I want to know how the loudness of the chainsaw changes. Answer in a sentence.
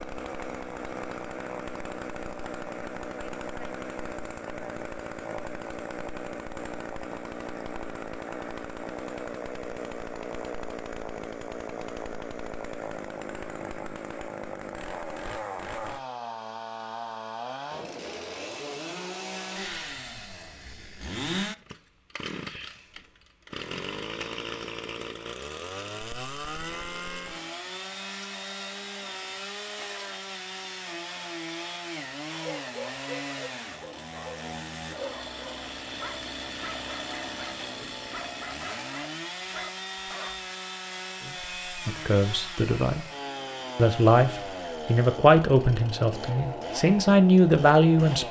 The loudness of the chainsaw stays about the same.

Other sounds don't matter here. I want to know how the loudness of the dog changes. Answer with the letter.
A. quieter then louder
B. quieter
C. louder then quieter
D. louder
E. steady
E.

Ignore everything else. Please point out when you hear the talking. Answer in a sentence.
You can hear the talking from 41.2 to 43.0 s and from 43.8 to 48.2 s.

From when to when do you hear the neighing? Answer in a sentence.
You can't hear the neighing here.